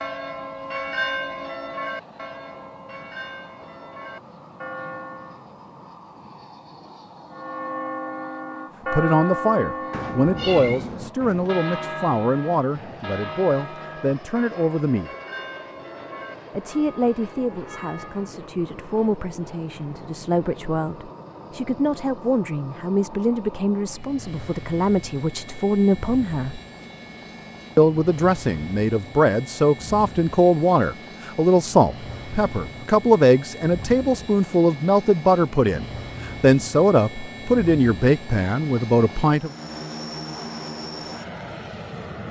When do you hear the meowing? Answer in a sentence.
You can hear the meowing from 9.9 to 11.2 s.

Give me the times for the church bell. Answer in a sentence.
The church bell can be heard from 0.0 to 5.4 s and from 7.3 to 18.3 s.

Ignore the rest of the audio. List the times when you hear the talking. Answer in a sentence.
You can hear the talking from 8.9 to 15.1 s, from 16.5 to 26.6 s and from 27.8 to 39.5 s.